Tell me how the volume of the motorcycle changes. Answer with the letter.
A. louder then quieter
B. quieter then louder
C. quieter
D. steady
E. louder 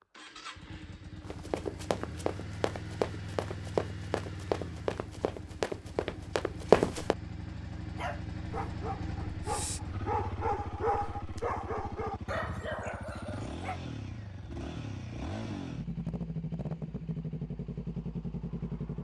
E.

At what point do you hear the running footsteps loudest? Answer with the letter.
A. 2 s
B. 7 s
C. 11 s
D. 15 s
B.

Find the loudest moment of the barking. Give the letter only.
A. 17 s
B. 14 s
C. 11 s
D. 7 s
C.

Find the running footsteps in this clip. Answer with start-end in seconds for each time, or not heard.
1.2-7.2.